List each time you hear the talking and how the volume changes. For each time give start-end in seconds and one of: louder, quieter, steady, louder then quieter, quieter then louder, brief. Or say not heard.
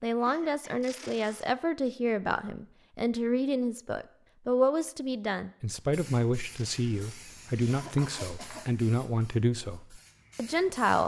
0.0-11.0 steady.